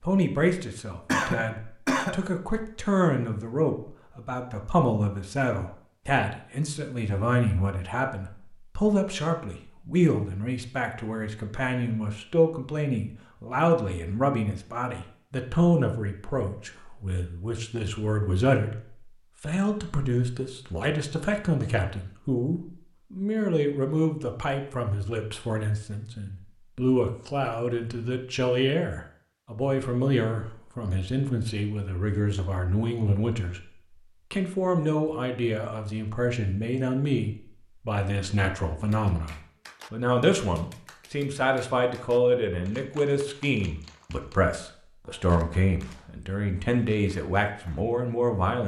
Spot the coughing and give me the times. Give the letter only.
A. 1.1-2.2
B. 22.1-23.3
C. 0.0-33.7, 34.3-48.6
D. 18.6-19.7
A.